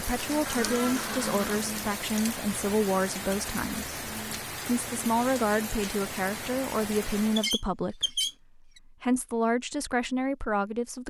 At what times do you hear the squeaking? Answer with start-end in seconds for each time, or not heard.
0.5-1.6, 7.3-8.8.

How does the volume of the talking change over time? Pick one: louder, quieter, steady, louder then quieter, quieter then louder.
steady.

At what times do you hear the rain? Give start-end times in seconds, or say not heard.
0.0-7.5.